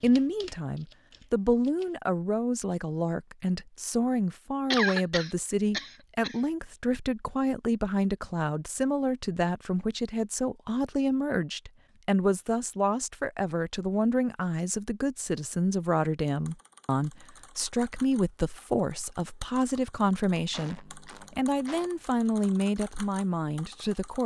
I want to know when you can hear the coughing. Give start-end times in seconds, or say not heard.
4.7-6.3, 20.5-21.9.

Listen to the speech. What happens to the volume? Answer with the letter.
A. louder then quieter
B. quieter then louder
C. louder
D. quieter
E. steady
E.